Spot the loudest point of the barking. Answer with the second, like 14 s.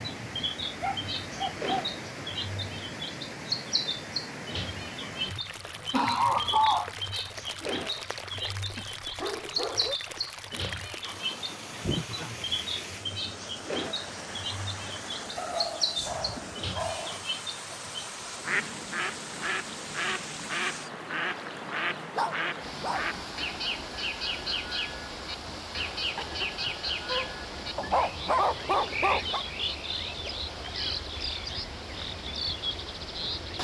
28 s.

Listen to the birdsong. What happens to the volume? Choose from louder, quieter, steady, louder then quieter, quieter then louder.
steady.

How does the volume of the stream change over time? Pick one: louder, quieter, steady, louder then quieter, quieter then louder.
steady.